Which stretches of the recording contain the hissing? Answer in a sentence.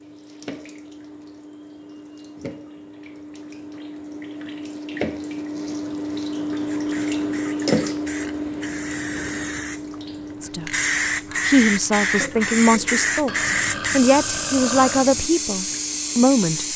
You can hear the hissing from 6.7 to 16.7 s.